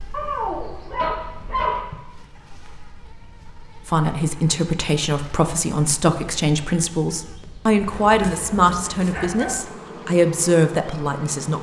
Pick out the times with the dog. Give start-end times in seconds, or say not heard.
0.1-1.8, 7.8-9.6.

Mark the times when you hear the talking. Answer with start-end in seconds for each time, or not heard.
3.9-11.5.